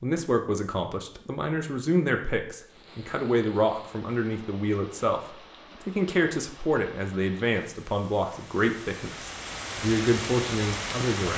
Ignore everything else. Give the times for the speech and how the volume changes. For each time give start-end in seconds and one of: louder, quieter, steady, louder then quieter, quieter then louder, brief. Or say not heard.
0.0-11.3 steady.